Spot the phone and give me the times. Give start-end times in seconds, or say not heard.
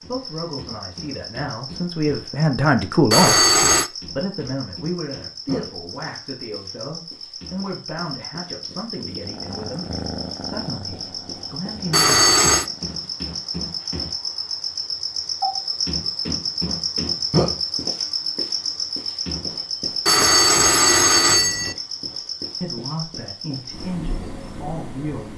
3.1-3.9, 11.9-12.7, 20.1-21.8.